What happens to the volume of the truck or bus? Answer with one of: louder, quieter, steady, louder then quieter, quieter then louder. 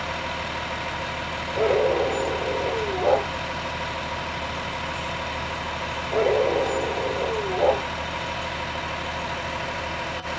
steady.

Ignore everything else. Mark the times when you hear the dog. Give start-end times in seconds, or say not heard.
1.6-3.2, 6.1-7.8.